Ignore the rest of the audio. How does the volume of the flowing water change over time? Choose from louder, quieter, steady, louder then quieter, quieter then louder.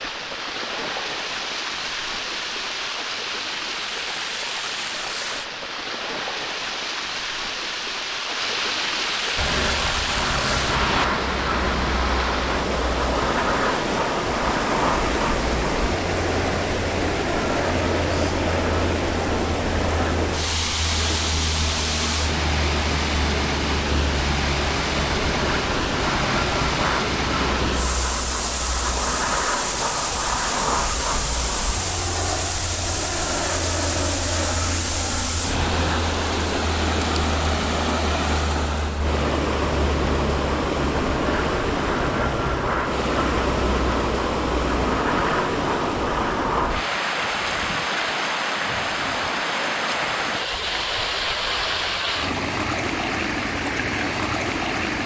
steady.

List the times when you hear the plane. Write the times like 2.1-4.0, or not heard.
9.3-46.9.